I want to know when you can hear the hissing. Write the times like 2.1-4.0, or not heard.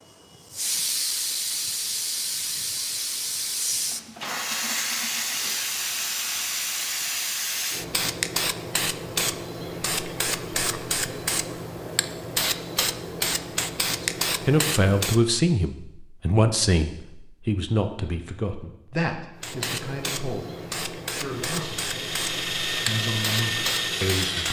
0.3-15.2, 19.4-24.4.